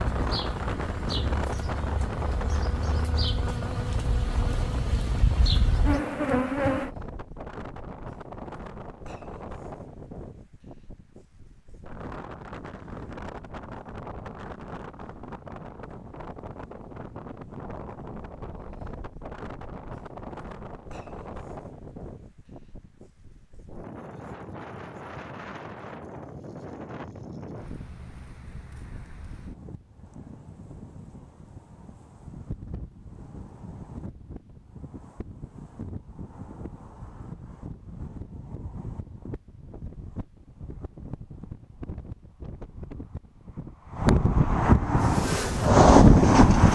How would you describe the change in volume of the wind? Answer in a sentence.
The volume of the wind goes down, then up.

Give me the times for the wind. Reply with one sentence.
The wind can be heard from 0.0 to 46.7 s.